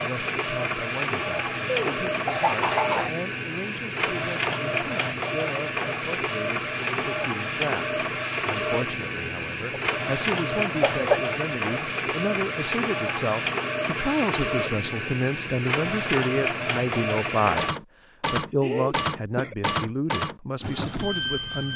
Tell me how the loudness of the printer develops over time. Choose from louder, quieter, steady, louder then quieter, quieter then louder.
steady.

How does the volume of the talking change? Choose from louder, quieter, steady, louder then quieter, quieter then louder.
louder.